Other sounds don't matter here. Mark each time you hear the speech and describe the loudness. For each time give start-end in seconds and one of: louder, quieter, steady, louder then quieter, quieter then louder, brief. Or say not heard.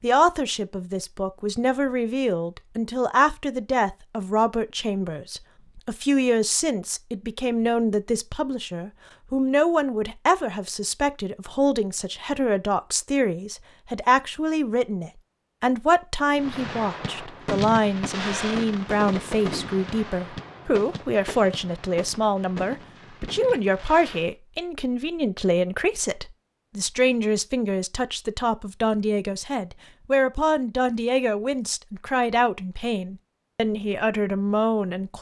0.0-35.1 steady.